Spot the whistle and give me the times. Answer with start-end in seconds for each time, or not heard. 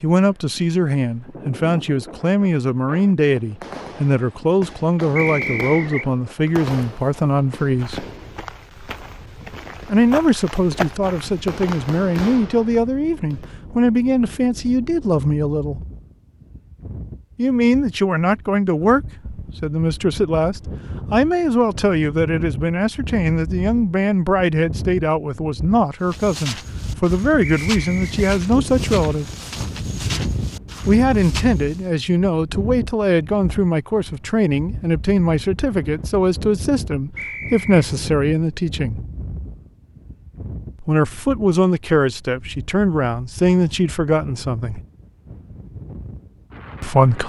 5.2-6.0, 27.4-28.4, 37.1-37.9.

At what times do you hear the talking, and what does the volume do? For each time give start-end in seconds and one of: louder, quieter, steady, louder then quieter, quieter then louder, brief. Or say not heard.
0.0-8.1 steady
9.8-15.8 steady
17.4-29.3 steady
30.9-39.0 steady
40.8-44.8 steady
46.8-47.2 brief.